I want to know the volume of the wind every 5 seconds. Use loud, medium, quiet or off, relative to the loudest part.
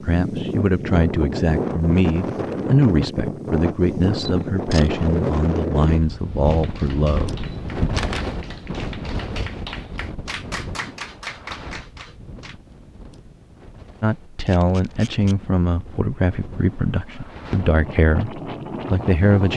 loud, loud, quiet, medium.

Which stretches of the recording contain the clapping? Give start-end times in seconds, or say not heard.
6.5-12.6.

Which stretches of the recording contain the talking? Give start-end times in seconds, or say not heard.
0.0-7.9, 14.0-19.5.